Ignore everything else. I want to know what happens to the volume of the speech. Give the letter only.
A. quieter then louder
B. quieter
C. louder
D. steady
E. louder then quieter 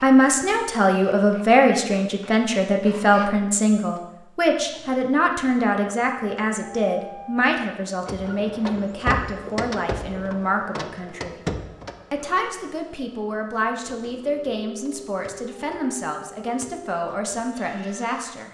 B.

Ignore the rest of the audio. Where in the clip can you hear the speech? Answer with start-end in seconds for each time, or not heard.
0.0-11.4, 12.1-18.5.